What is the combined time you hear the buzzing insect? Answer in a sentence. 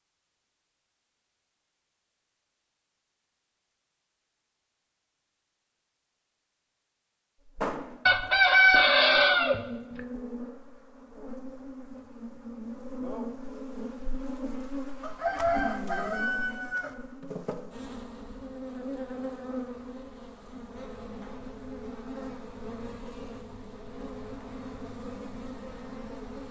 You can hear the buzzing insect for 19 seconds altogether.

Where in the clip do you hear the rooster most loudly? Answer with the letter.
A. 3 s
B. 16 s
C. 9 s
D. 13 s
C.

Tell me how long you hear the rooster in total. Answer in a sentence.
The rooster can be heard for 4 seconds in total.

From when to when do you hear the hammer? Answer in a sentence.
The hammer can't be heard in this clip.